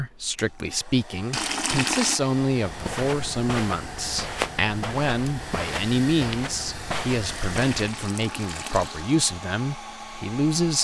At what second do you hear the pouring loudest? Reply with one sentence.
The volume of the pouring peaks at 2 seconds.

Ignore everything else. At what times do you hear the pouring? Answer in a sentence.
You can hear the pouring from 1.3 to 2.2 s and from 7.2 to 9.2 s.